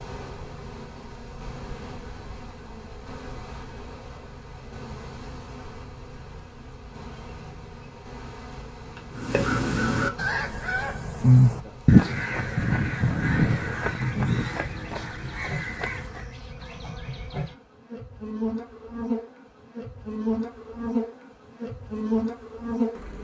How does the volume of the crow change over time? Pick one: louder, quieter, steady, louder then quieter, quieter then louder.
louder then quieter.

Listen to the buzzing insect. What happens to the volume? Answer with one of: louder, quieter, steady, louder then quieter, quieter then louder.
louder.